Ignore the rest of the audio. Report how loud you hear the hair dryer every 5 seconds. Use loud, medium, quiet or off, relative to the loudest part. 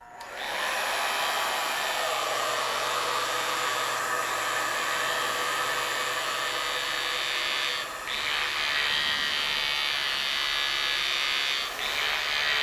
loud, loud, medium.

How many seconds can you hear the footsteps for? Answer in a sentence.
You can't hear the footsteps here.